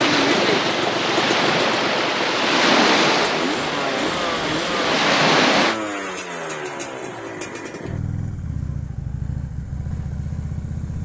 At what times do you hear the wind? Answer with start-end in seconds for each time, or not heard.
0.0-5.8.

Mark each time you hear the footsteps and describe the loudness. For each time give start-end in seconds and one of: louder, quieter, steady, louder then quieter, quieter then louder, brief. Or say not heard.
not heard.